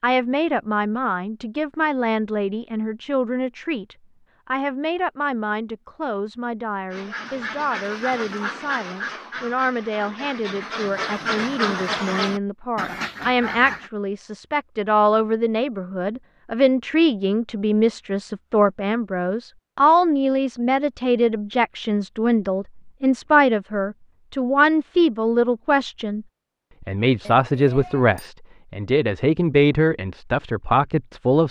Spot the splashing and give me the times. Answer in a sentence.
You can't hear the splashing here.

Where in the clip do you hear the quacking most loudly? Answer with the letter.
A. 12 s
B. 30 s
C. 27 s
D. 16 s
A.